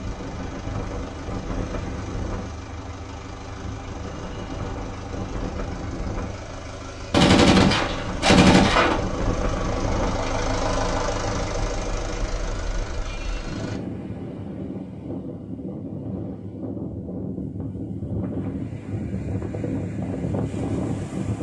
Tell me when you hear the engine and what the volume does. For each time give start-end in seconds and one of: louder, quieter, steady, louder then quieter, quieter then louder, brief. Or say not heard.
0.0-13.8 louder.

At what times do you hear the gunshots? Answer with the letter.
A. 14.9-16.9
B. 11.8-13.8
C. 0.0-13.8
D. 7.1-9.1
D.